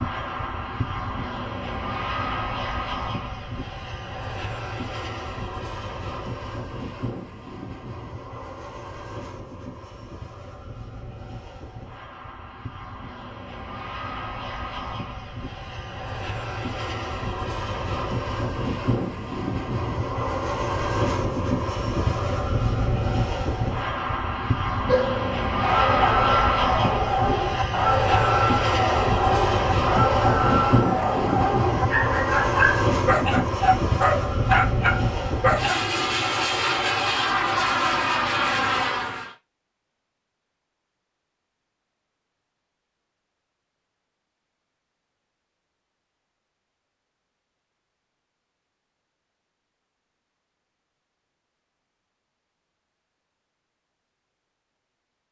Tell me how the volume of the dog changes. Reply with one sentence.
The loudness of the dog stays about the same.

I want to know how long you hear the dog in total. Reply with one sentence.
The dog can be heard for 11 seconds in total.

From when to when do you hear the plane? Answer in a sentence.
You can hear the plane from 0.0 to 39.4 s.